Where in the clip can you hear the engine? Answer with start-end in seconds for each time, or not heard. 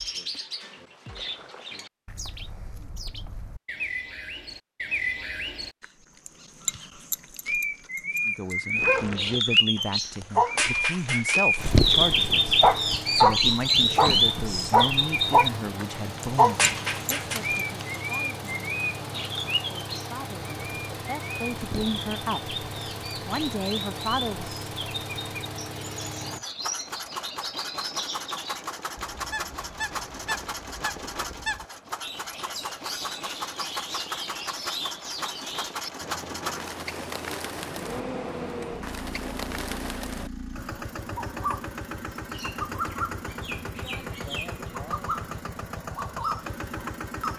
11.6-47.3.